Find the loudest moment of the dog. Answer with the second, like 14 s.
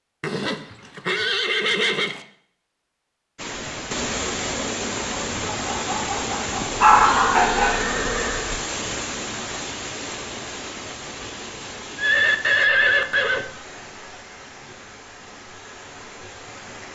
7 s.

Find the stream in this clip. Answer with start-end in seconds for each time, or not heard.
3.4-16.9.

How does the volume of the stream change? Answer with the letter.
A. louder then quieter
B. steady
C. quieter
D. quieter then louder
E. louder
C.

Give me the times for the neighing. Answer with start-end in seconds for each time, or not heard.
0.2-2.2, 6.6-8.6, 11.9-13.4.